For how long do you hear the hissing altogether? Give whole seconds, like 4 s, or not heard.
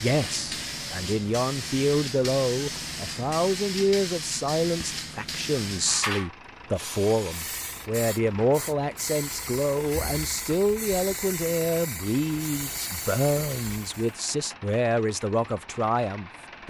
14 s.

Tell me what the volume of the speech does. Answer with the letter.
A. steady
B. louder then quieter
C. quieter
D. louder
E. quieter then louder
A.